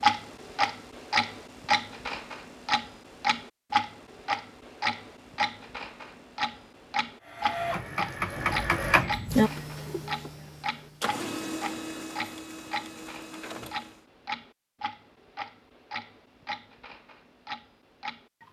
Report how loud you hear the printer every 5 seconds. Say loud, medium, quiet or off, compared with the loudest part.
off, loud, medium, off.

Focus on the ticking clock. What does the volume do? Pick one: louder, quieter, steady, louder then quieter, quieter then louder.
quieter.